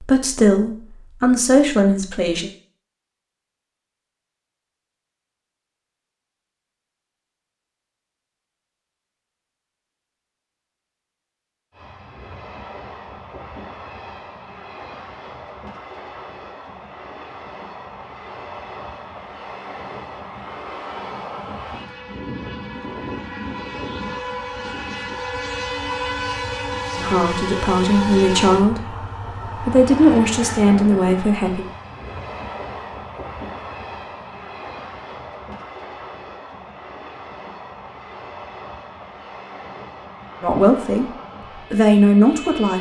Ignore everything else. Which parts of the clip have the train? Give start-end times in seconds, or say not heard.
11.7-42.7.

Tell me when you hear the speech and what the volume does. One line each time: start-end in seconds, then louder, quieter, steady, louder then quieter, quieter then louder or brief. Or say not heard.
0.0-2.5 brief
26.9-31.6 quieter then louder
40.4-42.7 brief.